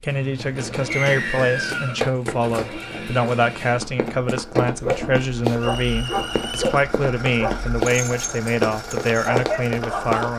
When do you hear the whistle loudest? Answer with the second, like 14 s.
1 s.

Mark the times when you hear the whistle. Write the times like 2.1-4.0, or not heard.
0.9-2.0, 5.6-6.6.